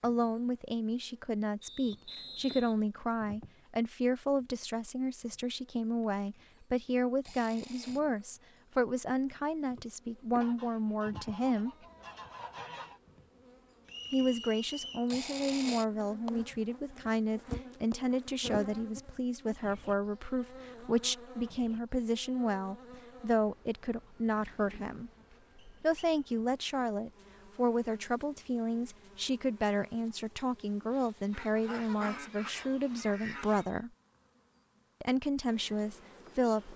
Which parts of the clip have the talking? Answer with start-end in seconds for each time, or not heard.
0.0-11.7, 14.1-25.1, 25.8-33.9, 35.0-36.7.